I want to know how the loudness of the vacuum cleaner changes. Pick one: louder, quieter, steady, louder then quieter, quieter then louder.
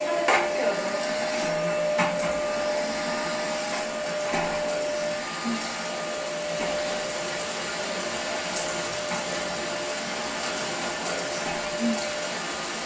quieter.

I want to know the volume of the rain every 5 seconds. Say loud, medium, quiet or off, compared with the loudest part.
medium, loud, loud.